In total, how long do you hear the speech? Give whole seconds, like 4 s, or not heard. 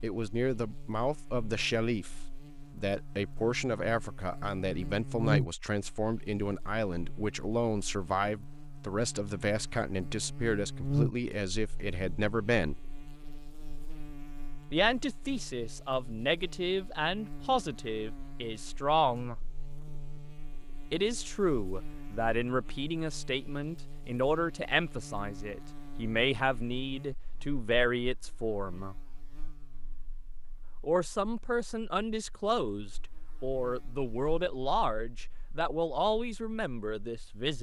32 s.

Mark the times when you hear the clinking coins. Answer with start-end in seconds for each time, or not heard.
not heard.